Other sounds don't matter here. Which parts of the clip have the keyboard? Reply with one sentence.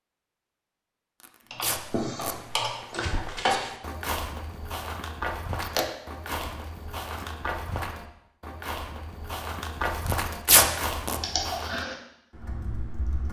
You can hear the keyboard from 1.5 to 4.0 s and from 11.2 to 13.2 s.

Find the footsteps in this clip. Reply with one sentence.
The footsteps can be heard from 2.2 to 11.8 s.